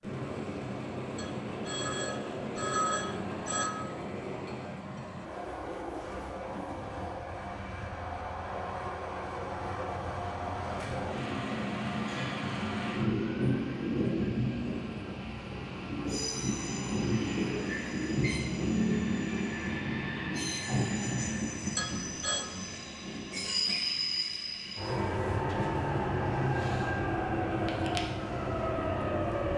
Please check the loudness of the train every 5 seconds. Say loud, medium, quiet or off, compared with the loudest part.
medium, medium, loud, loud, loud, loud.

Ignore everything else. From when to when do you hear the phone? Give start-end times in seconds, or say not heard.
1.1-3.8, 21.8-22.4.